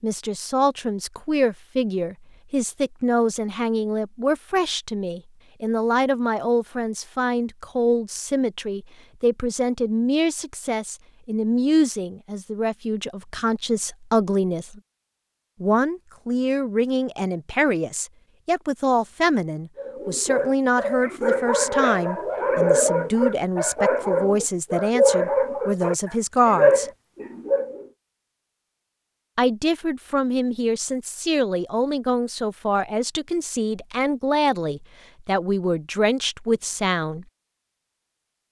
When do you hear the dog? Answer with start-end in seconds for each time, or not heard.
19.8-27.9.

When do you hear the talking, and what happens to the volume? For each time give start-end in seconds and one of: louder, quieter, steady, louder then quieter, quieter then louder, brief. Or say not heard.
0.0-14.8 steady
15.6-26.9 steady
29.4-37.2 steady.